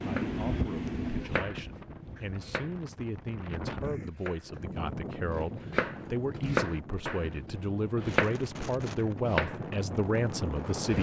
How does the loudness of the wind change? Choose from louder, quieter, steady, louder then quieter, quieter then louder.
quieter then louder.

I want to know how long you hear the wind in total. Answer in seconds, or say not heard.
11 s.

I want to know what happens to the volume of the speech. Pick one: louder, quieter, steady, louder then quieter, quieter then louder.
louder.